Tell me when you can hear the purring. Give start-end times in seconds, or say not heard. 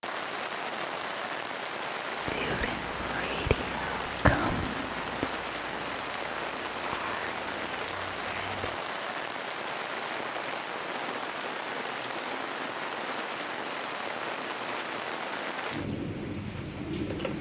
not heard.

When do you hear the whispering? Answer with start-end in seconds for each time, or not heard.
2.2-8.8.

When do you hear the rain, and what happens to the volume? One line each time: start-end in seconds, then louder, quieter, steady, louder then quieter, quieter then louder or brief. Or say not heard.
0.0-17.3 steady.